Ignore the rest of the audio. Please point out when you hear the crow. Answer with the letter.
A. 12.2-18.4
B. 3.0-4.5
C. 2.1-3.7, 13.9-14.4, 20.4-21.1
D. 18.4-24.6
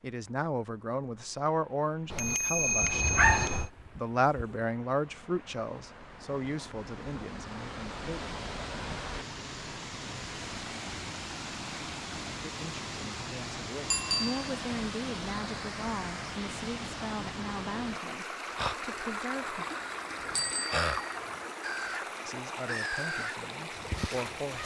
D.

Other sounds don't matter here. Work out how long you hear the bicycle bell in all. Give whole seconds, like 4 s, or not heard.
3 s.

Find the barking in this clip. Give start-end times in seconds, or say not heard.
3.0-4.5.